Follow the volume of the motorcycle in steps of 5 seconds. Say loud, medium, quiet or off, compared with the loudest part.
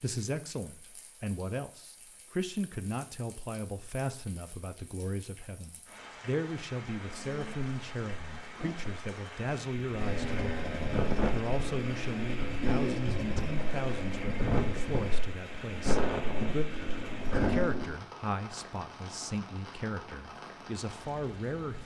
off, quiet, loud, loud, off.